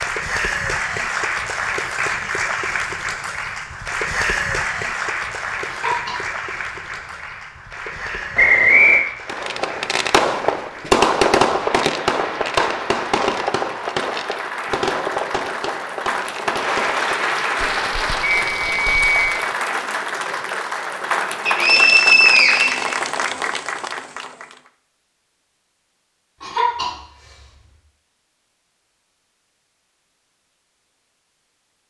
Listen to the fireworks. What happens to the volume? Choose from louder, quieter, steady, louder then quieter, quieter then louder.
quieter.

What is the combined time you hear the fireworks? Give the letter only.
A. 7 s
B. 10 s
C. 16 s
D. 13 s
B.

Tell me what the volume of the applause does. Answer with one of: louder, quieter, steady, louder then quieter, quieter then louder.
quieter then louder.